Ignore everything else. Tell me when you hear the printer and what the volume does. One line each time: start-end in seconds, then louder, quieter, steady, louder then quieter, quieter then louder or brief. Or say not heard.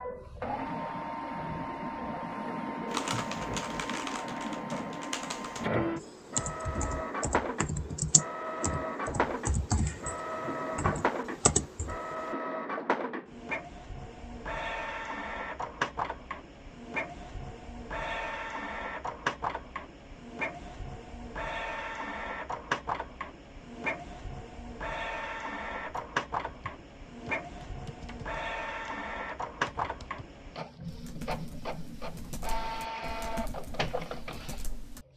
0.0-35.1 steady.